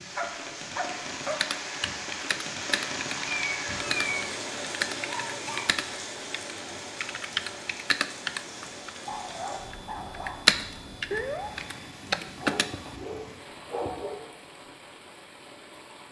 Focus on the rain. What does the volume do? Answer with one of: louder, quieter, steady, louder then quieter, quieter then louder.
quieter.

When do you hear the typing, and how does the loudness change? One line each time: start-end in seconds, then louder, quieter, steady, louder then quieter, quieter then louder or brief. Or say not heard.
1.2-12.7 louder.